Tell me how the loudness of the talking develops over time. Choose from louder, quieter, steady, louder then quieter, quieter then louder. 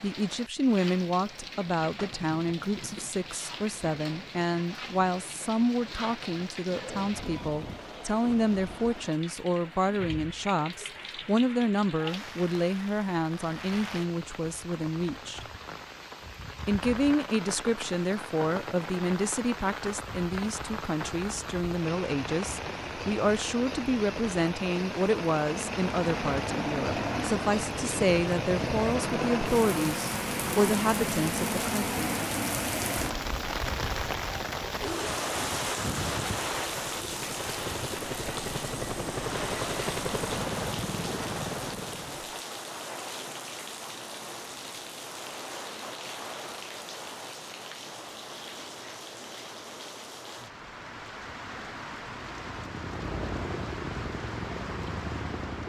steady.